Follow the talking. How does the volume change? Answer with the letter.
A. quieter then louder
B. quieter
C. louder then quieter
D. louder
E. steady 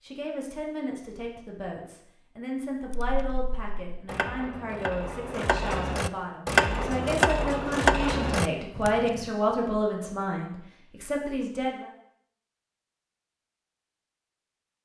D.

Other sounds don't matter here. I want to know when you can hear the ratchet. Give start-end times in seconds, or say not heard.
2.9-9.3.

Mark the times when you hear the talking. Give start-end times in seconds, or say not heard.
0.0-11.9.